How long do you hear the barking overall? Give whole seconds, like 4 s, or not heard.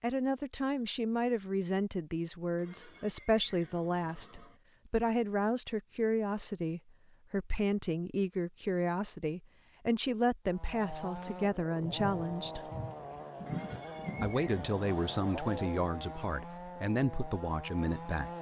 not heard.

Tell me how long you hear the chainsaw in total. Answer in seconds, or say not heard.
8 s.